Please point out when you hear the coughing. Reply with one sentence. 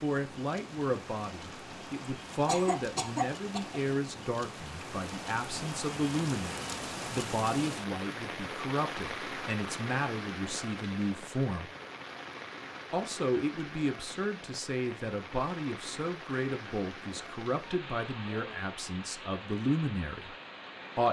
The coughing can be heard from 2.5 to 3.8 s.